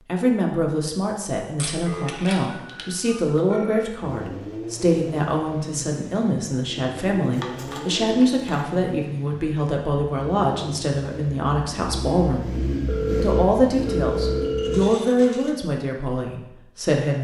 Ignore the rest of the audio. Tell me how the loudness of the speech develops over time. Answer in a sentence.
The loudness of the speech stays about the same.